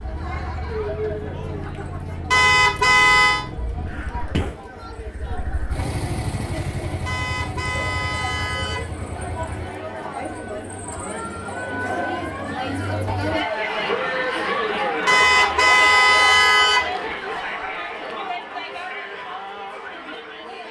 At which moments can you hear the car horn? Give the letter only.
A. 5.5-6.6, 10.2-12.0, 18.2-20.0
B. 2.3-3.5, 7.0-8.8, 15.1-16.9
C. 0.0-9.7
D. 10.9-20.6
B.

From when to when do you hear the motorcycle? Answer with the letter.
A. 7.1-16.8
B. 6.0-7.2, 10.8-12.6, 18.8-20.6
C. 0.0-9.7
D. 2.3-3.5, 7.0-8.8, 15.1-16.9
C.